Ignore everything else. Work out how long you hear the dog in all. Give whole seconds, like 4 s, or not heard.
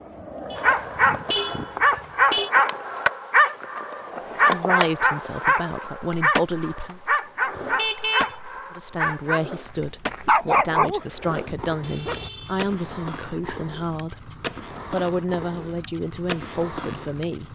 11 s.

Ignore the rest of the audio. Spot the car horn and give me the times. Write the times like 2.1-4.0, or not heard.
0.5-2.5, 7.5-8.3, 11.8-12.7.